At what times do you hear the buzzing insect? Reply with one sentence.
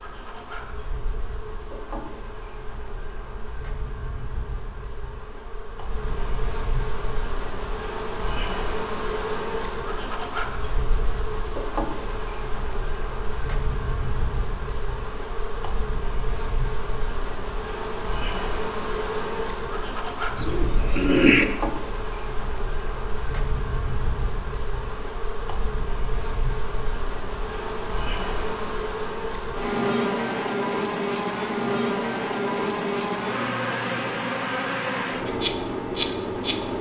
You can hear the buzzing insect from 0.0 to 36.7 s.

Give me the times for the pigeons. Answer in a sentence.
The pigeons can be heard from 20.4 to 21.4 s.